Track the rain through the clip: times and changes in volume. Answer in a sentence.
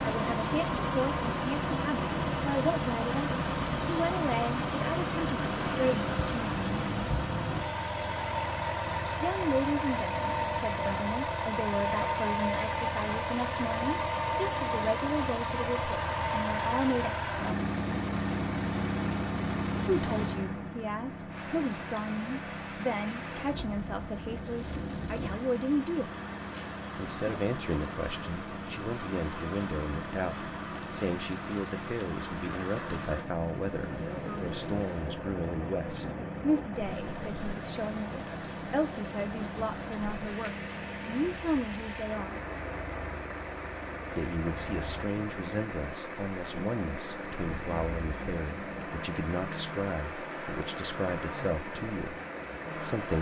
You can hear the rain from 21.2 to 53.1 s, at a steady volume.